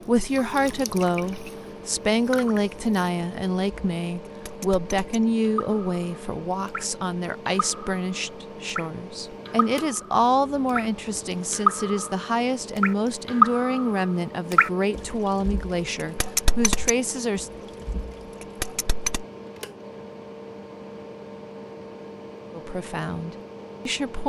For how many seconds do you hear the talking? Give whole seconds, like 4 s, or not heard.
19 s.